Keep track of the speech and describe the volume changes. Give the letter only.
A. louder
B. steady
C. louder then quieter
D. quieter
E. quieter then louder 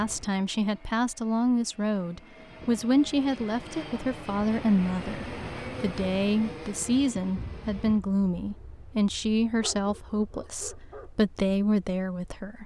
B.